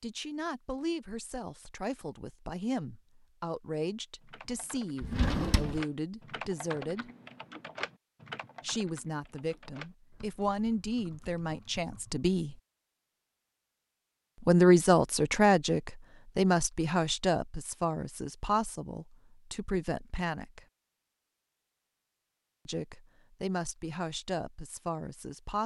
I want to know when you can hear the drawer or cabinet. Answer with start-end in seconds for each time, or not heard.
5.0-5.8.